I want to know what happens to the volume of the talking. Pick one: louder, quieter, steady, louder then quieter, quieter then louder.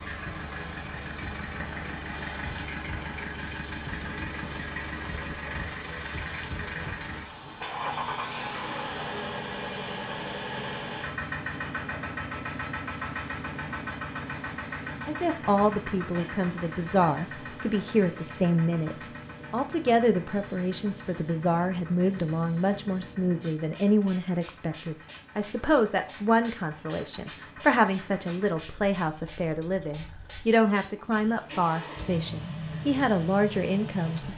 steady.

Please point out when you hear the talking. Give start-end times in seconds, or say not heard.
15.1-34.3.